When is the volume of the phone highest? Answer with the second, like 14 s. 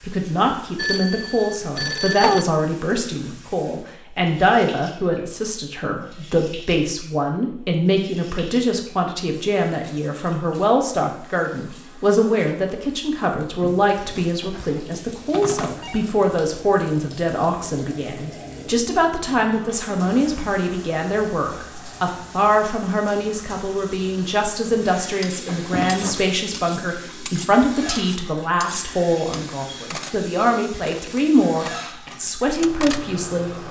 2 s.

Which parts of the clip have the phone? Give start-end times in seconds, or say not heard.
0.8-2.5, 14.0-16.1, 25.4-26.2.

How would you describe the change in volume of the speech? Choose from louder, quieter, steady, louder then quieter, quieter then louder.
steady.